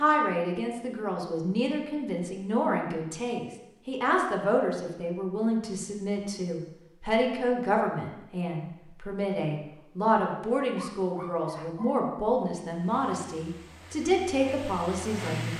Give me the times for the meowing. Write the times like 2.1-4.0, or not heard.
not heard.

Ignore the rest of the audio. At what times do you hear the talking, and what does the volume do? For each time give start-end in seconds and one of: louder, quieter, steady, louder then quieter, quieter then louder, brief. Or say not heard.
0.0-15.5 steady.